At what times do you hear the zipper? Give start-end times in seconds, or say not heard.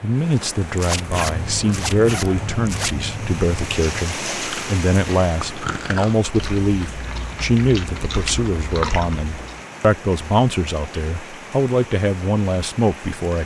0.8-3.0.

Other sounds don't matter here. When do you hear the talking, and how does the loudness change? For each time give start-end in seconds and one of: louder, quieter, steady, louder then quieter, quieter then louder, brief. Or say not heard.
0.0-13.4 steady.